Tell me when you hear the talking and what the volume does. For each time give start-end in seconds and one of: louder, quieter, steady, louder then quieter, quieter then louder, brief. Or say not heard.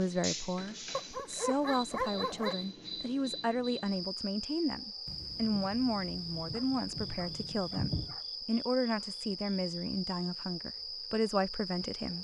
0.0-12.1 steady.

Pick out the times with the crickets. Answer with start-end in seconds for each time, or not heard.
0.0-12.1.